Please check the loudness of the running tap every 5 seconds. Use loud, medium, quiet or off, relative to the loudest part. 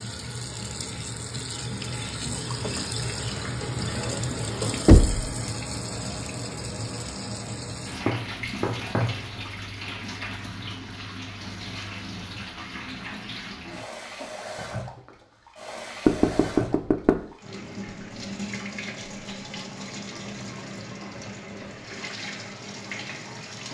loud, loud, medium, medium, medium.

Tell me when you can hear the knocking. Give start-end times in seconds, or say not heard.
4.8-5.3, 8.1-9.2, 16.1-17.2.